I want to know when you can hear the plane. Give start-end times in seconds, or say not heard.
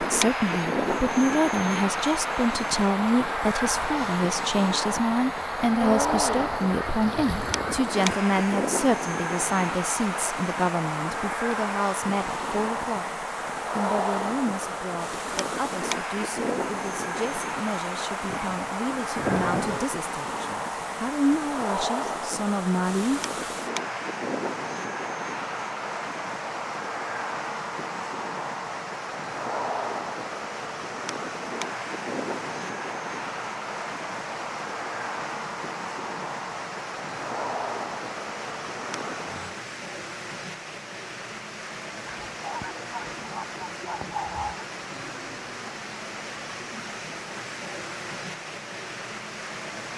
0.0-39.5.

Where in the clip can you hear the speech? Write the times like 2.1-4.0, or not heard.
0.0-23.2.